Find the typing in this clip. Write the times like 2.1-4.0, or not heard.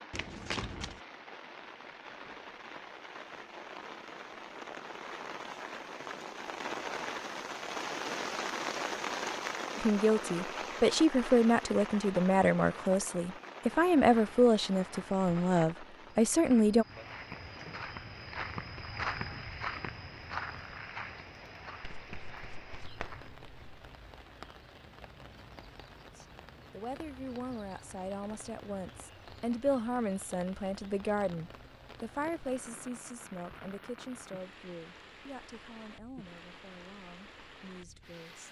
not heard.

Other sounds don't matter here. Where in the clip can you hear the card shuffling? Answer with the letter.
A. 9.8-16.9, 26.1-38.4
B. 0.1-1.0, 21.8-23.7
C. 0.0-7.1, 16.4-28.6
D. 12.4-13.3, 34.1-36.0
B.